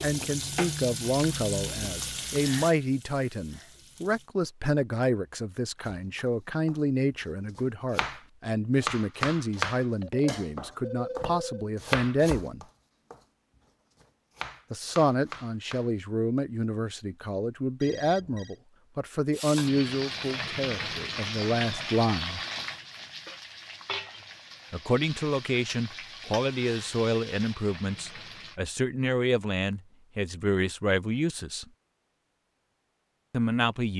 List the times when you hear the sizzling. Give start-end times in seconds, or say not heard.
0.0-4.3, 19.3-28.6.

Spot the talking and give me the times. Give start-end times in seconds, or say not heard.
0.0-12.7, 14.7-22.4, 24.7-31.6, 33.3-33.9.